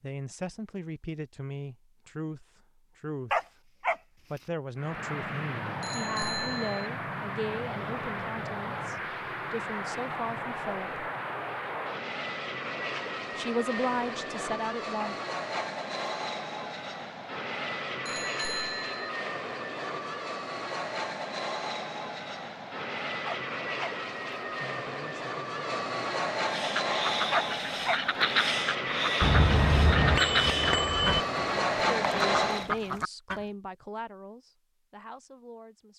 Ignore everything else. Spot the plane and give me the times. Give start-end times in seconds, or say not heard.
4.8-32.7.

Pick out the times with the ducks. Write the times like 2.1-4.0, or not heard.
26.4-33.5.